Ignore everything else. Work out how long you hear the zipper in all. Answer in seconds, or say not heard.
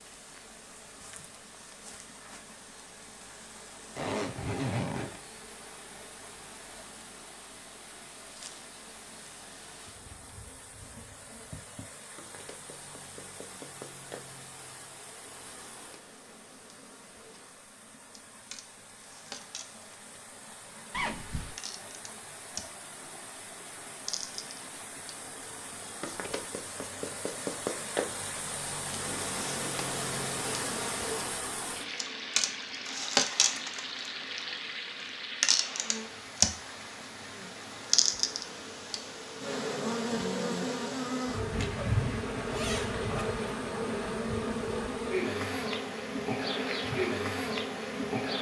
4 s.